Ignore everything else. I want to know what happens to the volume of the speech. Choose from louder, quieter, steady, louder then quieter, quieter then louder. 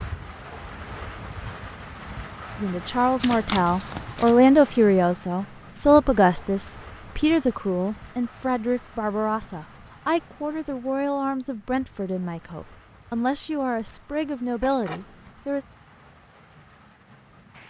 quieter.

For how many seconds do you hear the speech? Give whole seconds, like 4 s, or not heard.
13 s.